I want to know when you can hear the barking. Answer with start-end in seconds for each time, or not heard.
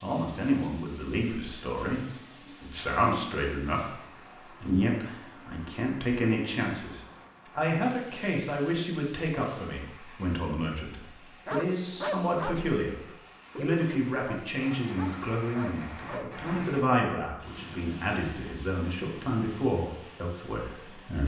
11.4-16.7.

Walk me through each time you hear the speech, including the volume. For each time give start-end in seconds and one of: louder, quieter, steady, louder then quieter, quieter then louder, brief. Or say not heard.
0.0-21.2 steady.